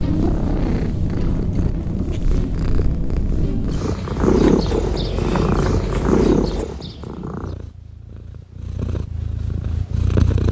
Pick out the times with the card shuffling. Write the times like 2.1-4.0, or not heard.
4.2-6.7.